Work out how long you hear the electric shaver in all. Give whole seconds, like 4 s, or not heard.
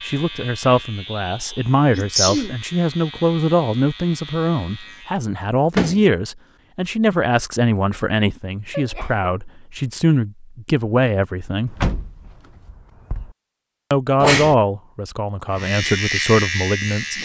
7 s.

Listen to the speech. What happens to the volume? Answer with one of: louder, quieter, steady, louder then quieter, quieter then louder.
steady.